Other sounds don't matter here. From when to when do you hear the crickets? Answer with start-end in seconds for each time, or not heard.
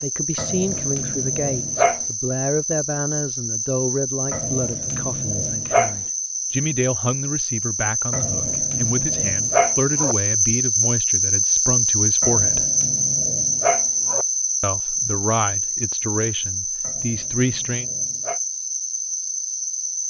0.0-20.0.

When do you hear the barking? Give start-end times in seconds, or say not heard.
0.3-2.0, 4.3-6.0, 8.1-10.2, 12.2-14.2, 16.8-18.4.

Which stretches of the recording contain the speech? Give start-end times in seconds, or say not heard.
0.0-12.7, 14.6-17.9.